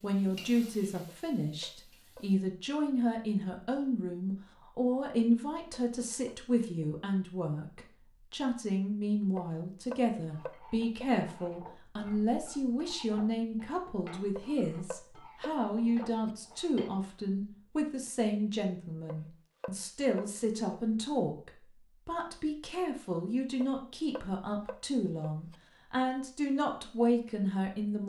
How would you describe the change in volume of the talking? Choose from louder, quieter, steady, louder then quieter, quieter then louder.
steady.